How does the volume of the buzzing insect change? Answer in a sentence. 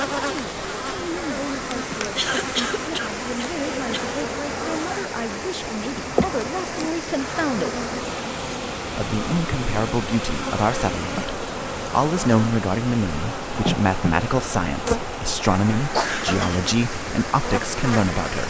The loudness of the buzzing insect stays about the same.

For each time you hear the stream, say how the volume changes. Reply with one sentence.
The stream can be heard from 0.0 to 18.4 s, at a steady volume.